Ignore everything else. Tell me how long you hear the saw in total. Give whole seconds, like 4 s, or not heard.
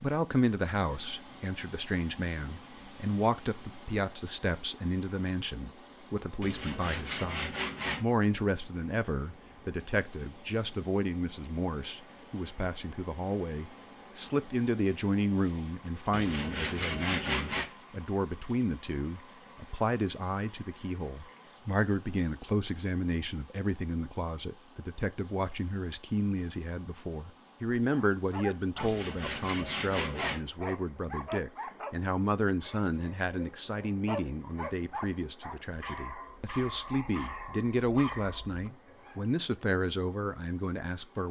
5 s.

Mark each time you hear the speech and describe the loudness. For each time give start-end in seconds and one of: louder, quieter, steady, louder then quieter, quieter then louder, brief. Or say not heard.
0.0-41.2 steady.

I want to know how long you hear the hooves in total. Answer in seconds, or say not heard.
not heard.